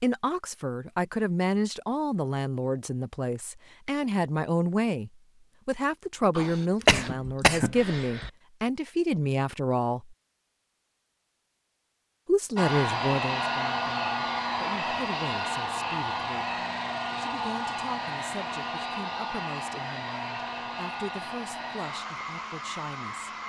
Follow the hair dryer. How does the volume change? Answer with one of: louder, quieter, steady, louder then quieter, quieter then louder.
quieter.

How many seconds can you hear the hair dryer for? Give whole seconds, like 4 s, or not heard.
11 s.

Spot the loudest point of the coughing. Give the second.
7 s.